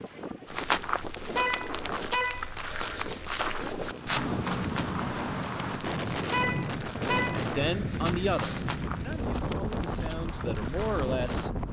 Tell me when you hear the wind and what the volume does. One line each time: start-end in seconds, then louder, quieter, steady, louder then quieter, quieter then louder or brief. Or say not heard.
0.0-11.6 louder.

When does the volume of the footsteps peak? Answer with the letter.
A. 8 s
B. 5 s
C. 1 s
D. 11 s
C.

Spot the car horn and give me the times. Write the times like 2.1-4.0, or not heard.
1.4-2.5, 6.3-7.5.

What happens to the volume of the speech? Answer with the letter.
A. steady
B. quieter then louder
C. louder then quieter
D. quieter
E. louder
B.